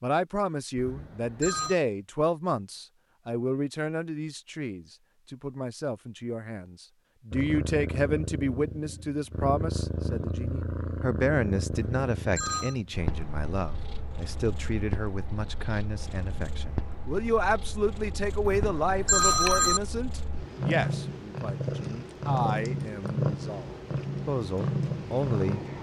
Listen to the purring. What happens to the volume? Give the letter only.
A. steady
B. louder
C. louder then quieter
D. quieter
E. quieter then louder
E.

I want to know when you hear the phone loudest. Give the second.
19 s.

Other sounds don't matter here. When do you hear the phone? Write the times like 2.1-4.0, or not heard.
0.8-1.8, 11.7-12.8, 18.4-19.8.